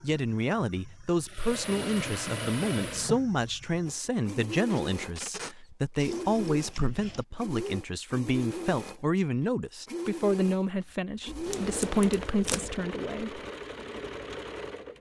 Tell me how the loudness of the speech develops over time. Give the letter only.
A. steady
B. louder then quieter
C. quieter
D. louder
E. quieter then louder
A.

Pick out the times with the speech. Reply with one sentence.
You can hear the speech from 0.0 to 13.4 s.